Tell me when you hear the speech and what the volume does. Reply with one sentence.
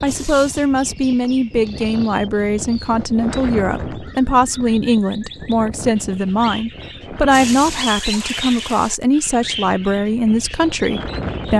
You can hear the speech from 0.0 to 11.5 s, at a steady volume.